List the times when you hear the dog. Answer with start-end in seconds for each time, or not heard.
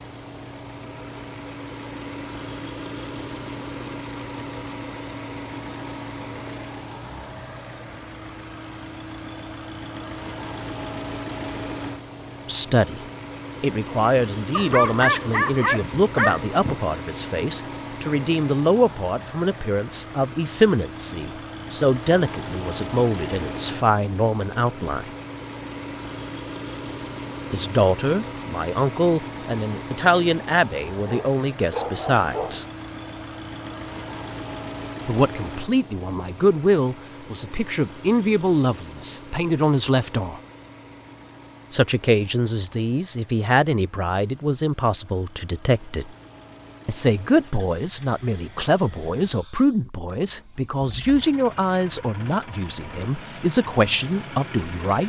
14.5-16.8, 31.0-32.6.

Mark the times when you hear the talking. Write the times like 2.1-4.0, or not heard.
12.4-13.0, 13.6-25.1, 27.5-32.6, 35.0-40.4, 41.7-46.1, 46.9-55.0.